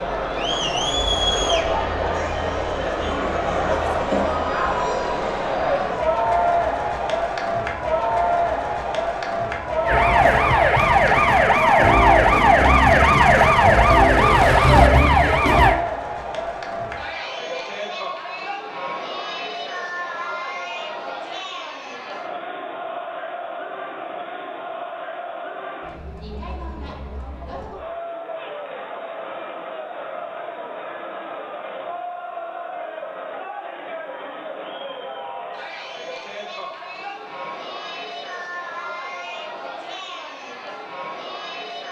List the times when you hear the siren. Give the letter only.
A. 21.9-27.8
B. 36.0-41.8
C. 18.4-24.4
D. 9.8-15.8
D.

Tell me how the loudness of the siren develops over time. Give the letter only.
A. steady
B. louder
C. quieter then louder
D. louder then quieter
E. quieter
A.